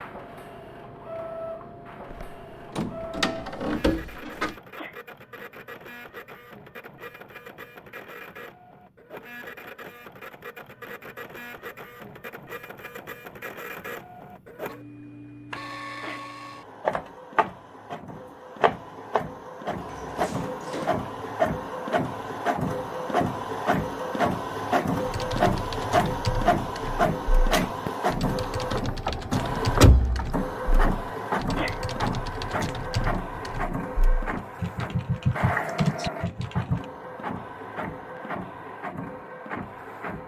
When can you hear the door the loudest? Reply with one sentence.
The volume of the door peaks at 30 seconds.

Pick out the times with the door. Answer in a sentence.
The door can be heard from 2.1 to 4.5 s, from 19.6 to 21.1 s and from 29.1 to 30.4 s.